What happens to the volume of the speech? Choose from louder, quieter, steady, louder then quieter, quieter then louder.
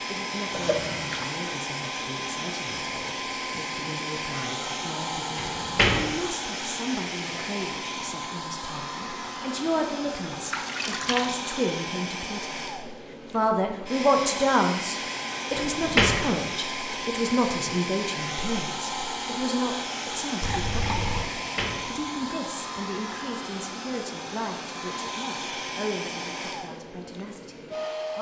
louder then quieter.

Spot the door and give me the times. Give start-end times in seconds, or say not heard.
5.3-6.2, 15.6-16.5, 21.4-22.4.